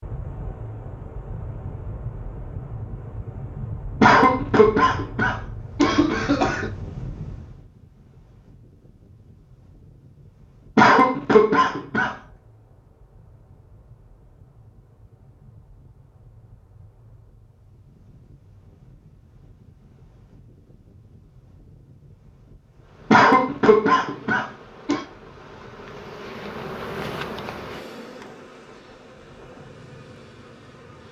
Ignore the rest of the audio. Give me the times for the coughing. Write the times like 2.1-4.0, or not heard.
4.0-6.7, 10.8-12.2, 23.1-25.0.